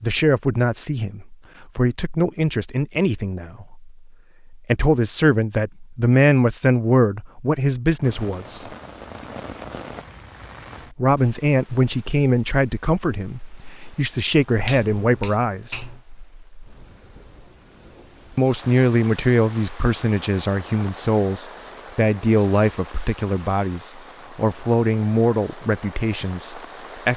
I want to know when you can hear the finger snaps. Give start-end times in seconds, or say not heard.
14.6-16.0.